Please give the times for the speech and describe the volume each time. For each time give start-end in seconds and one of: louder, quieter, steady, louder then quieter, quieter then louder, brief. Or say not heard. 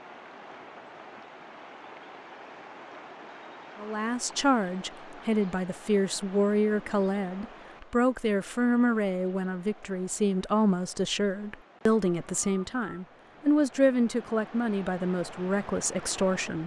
3.8-16.6 steady.